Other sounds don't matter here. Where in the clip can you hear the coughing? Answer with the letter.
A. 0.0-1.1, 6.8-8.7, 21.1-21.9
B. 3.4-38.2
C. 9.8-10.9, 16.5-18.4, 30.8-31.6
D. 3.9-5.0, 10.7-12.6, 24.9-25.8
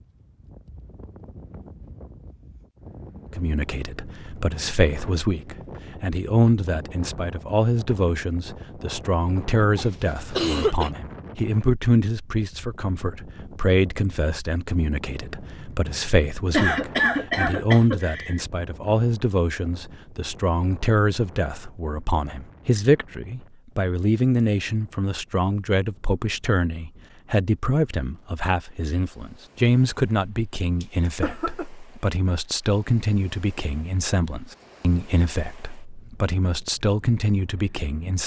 C.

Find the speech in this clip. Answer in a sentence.
The speech can be heard from 3.4 to 38.2 s.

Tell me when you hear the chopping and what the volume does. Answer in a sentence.
You can't hear the chopping here.